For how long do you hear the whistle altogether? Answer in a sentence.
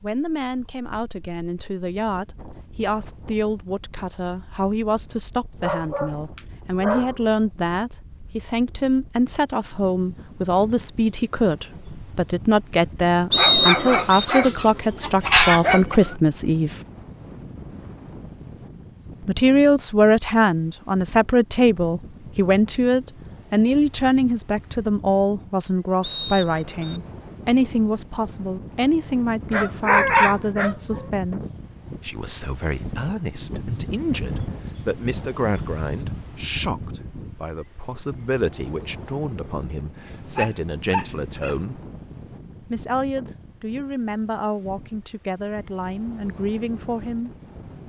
The whistle can be heard for 2 seconds in total.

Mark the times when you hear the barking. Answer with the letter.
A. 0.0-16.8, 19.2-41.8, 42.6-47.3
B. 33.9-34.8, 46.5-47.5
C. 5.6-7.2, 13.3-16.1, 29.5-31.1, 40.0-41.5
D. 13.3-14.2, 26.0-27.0
C.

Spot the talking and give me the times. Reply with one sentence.
The talking can be heard from 0.0 to 16.8 s, from 19.2 to 41.8 s and from 42.6 to 47.3 s.